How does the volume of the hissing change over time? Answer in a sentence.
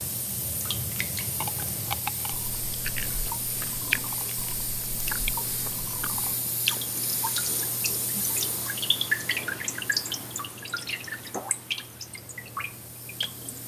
The loudness of the hissing goes down.